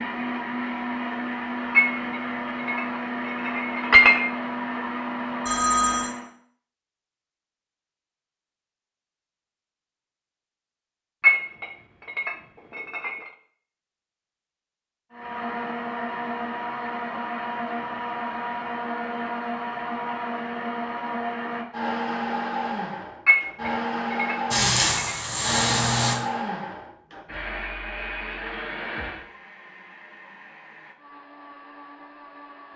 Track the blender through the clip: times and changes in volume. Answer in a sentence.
The blender can be heard from 0.0 to 6.3 s, at a steady volume; and from 15.1 to 32.7 s, getting quieter.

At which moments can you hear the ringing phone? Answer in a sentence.
The ringing phone can be heard from 5.5 to 6.1 s.